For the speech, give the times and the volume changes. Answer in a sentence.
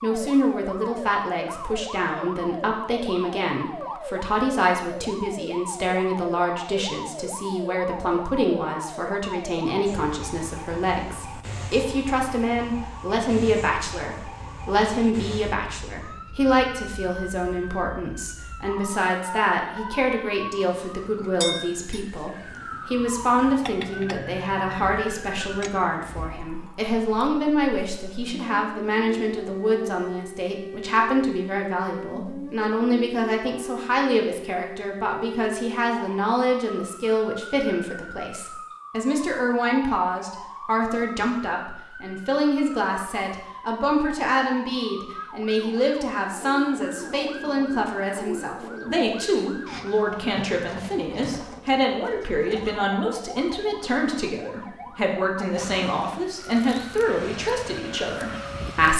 You can hear the speech from 0.0 to 58.9 s, at a steady volume.